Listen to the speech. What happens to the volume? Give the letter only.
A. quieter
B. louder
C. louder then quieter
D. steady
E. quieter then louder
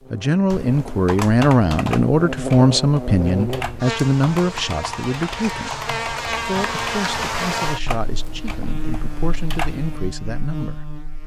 A.